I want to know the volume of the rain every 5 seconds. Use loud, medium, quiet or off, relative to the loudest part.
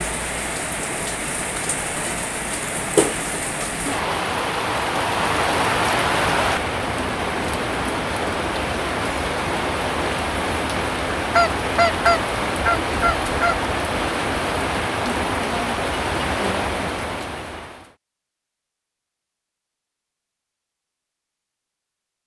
loud, loud, loud, loud, off.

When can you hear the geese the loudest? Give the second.
12 s.